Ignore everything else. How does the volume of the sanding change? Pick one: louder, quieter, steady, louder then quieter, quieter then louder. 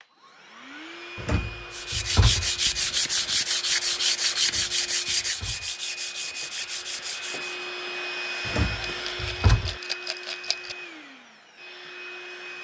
quieter.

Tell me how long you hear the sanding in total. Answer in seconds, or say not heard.
6 s.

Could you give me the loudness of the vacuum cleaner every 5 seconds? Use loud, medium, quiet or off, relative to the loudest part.
medium, loud, medium.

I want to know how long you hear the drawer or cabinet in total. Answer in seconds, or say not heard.
4 s.